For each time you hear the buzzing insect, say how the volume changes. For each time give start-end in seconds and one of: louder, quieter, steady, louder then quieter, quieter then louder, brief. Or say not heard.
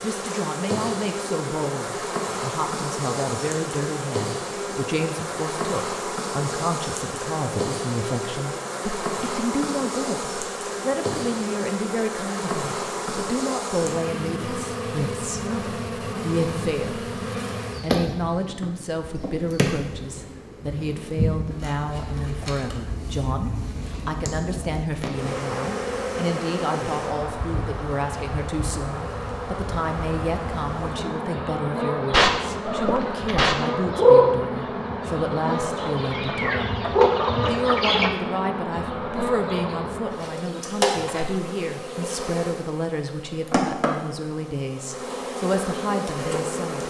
0.0-46.8 steady.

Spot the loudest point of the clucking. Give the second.
34 s.